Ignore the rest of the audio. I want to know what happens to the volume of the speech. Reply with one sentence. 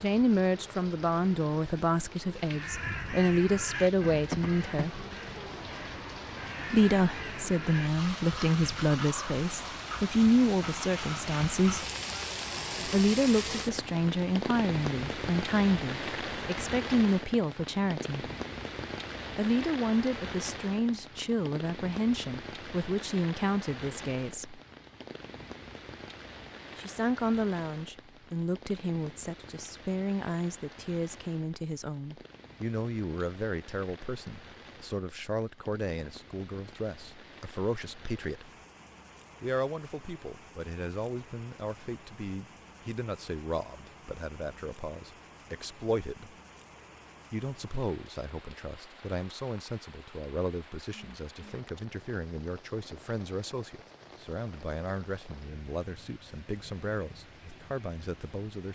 The volume of the speech goes down.